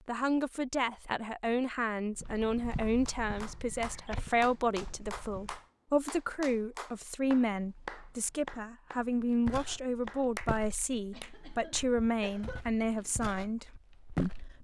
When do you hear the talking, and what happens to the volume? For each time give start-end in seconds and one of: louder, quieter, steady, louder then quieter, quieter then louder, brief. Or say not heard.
0.1-14.5 steady.